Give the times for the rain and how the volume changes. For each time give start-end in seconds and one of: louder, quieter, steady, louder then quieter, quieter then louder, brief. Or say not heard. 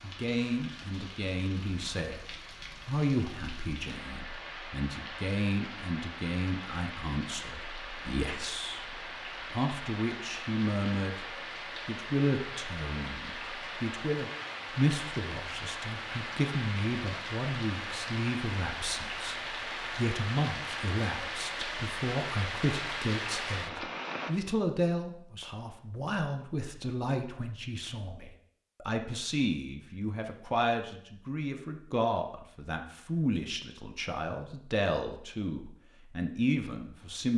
0.0-24.3 louder.